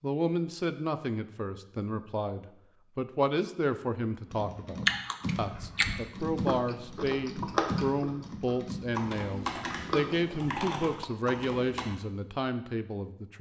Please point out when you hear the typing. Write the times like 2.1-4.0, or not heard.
4.2-11.8.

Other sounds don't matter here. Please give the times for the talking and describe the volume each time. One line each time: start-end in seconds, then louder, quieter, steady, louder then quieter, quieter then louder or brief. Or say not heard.
0.0-13.3 steady.